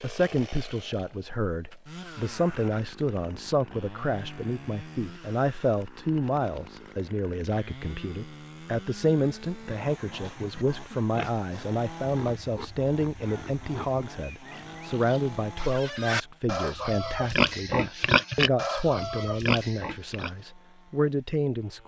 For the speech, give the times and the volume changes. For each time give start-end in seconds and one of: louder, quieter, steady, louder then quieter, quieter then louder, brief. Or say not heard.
0.0-21.8 steady.